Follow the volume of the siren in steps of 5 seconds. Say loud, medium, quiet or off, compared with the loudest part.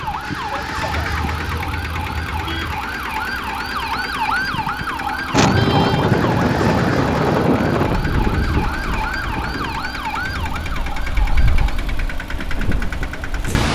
loud, loud, medium.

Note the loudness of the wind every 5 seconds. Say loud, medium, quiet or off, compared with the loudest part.
off, loud, medium.